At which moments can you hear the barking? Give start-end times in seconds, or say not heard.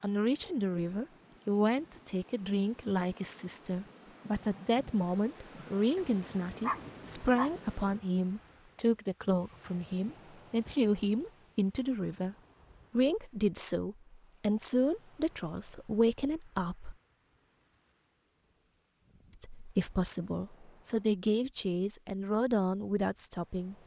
6.0-7.6.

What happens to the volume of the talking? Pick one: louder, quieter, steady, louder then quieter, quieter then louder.
steady.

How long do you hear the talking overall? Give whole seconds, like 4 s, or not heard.
21 s.